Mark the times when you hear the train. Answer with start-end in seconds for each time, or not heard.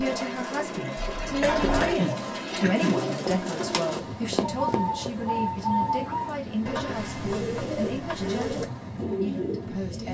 0.0-10.0.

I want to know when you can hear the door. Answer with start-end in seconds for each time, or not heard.
0.9-1.9.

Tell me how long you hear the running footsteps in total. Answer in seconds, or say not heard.
2 s.